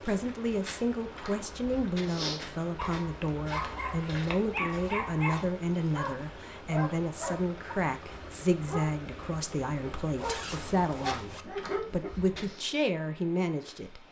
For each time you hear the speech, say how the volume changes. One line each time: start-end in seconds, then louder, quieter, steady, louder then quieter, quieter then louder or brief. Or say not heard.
0.0-14.0 steady.